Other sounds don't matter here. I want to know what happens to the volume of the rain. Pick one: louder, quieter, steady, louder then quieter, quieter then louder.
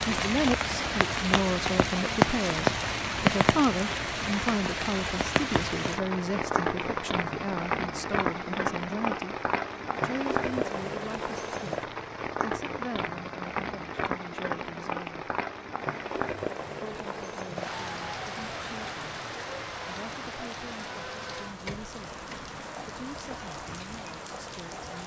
quieter.